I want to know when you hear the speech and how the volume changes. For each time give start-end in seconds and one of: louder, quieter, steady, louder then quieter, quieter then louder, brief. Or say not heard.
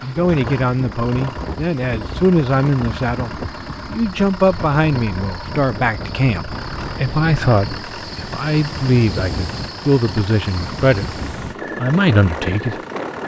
0.0-11.2 steady
11.8-12.8 brief.